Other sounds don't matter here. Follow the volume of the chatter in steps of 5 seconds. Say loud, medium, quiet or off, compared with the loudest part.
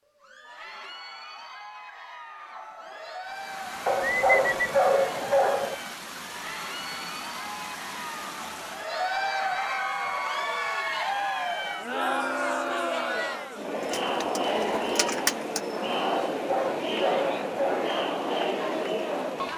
quiet, medium, loud, loud.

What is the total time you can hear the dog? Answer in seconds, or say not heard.
4 s.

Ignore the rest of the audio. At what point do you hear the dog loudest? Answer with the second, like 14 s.
5 s.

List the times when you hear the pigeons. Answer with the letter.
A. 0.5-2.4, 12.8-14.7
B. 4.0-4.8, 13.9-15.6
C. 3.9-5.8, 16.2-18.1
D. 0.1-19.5
B.